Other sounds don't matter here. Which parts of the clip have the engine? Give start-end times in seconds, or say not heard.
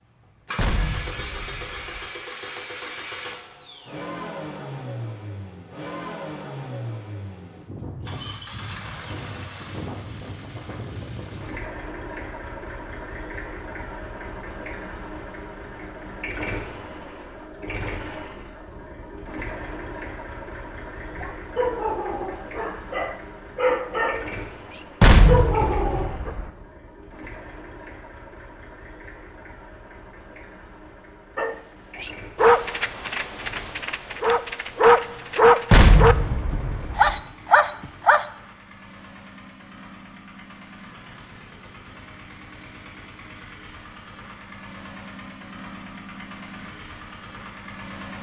0.1-48.1.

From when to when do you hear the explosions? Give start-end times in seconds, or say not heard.
0.6-2.0, 25.0-26.5, 35.7-37.2.